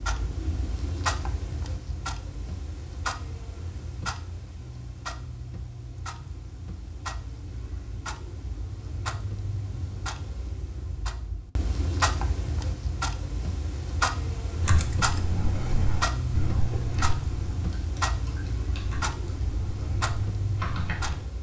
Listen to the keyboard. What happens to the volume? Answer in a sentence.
The loudness of the keyboard goes down, then up.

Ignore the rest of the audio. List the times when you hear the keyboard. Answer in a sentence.
You can hear the keyboard from 14.6 to 21.2 s.